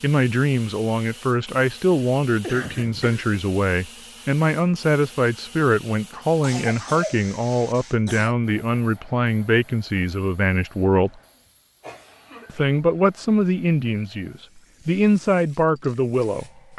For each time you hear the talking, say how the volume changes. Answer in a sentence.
The talking can be heard from 0.0 to 11.1 s, at a steady volume; and from 12.4 to 16.7 s, getting quieter then louder.